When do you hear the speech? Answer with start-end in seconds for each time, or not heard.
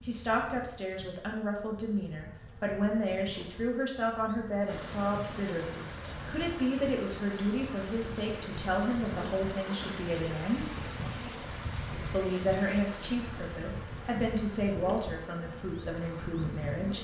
0.1-10.7, 12.1-16.9.